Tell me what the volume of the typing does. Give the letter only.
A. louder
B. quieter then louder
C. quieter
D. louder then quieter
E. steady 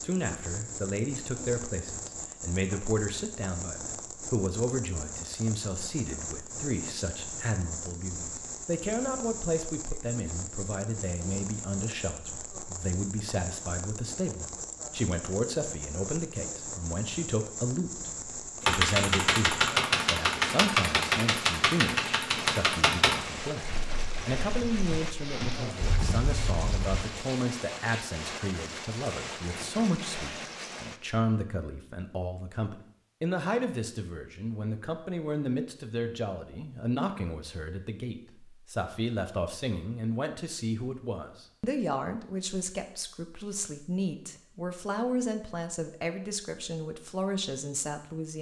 B.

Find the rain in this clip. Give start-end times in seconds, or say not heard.
0.0-31.1.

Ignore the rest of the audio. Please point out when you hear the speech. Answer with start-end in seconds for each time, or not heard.
0.0-23.6, 24.2-48.3.